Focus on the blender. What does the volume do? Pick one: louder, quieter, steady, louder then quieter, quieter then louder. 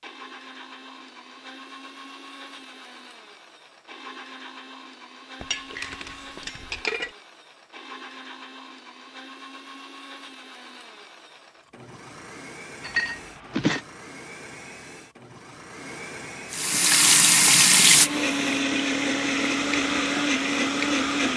louder.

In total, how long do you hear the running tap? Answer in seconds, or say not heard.
5 s.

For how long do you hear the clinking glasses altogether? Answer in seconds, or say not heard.
3 s.